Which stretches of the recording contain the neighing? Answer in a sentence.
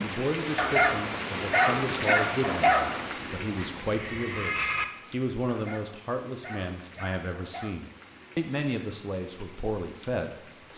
The neighing can be heard from 3.5 to 4.8 s.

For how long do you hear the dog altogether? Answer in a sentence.
You can hear the dog for 5 seconds altogether.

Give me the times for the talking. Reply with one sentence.
You can hear the talking from 0.0 to 10.7 s.